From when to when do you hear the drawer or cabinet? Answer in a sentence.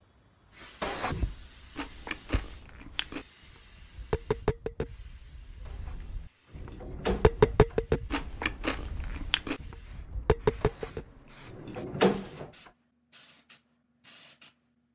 The drawer or cabinet can be heard from 0.8 to 1.4 s, from 5.7 to 8.2 s and from 10.6 to 12.5 s.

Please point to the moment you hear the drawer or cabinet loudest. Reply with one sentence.
The volume of the drawer or cabinet peaks at 12 seconds.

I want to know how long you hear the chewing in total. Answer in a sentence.
You can hear the chewing for 3 seconds altogether.